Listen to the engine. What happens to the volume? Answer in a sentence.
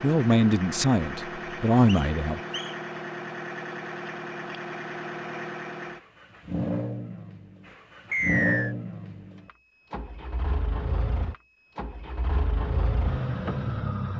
The volume of the engine stays about the same.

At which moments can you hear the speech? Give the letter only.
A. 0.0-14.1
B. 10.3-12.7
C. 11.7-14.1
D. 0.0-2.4
D.